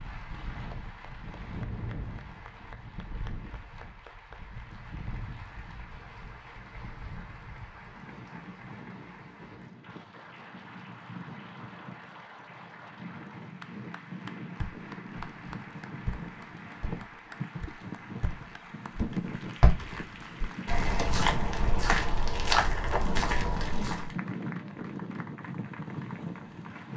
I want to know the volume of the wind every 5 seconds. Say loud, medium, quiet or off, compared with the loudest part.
medium, medium, medium, loud, loud, loud.